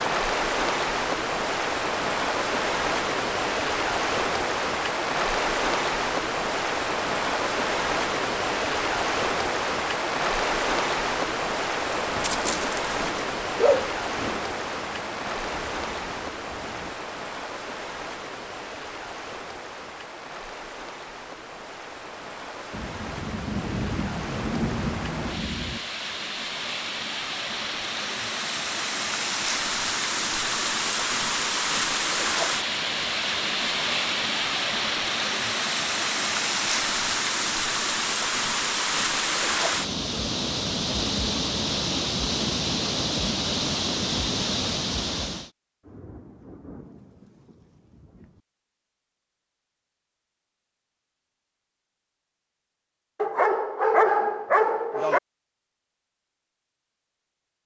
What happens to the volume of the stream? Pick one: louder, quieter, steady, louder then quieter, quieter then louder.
quieter then louder.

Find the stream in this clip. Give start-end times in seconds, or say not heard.
0.0-45.5.